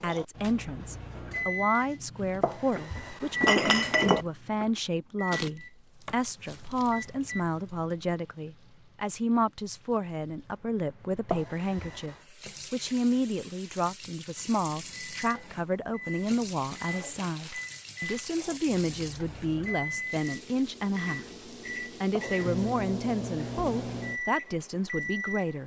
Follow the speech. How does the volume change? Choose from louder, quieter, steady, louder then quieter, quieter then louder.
steady.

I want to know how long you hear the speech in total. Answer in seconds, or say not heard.
25 s.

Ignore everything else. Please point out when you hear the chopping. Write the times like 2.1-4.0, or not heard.
not heard.